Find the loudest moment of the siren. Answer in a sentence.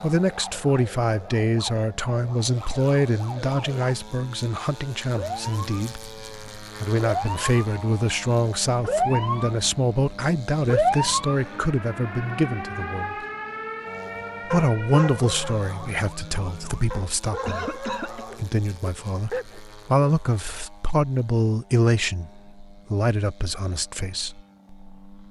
The volume of the siren peaks at 11 seconds.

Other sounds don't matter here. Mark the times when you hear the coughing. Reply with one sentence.
You can hear the coughing from 17.4 to 18.2 s.